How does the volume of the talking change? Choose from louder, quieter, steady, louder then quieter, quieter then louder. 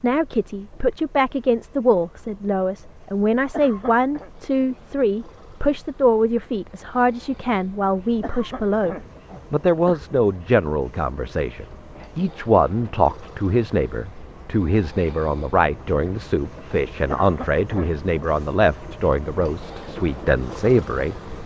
steady.